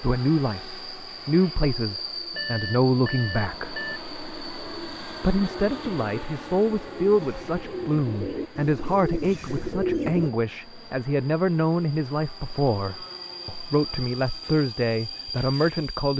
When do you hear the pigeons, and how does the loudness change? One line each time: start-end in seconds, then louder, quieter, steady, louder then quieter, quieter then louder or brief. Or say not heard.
3.8-10.3 louder.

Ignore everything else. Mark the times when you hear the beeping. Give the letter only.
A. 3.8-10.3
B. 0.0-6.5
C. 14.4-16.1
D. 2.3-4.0
D.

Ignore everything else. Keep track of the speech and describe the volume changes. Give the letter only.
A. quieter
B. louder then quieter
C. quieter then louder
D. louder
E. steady
E.